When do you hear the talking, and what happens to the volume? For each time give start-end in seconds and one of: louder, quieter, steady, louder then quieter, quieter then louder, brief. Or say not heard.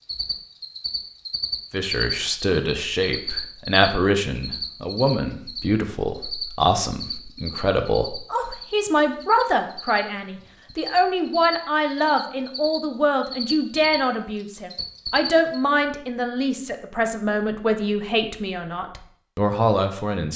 1.7-20.3 steady.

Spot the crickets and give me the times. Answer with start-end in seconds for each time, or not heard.
0.0-15.6.